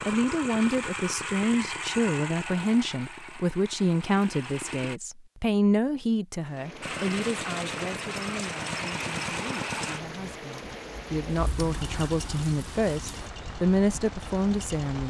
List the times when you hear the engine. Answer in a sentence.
The engine can be heard from 0.0 to 5.0 s and from 6.8 to 15.0 s.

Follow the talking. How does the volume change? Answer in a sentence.
The volume of the talking goes down, then up.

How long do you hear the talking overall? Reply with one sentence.
The talking can be heard for 15 seconds in total.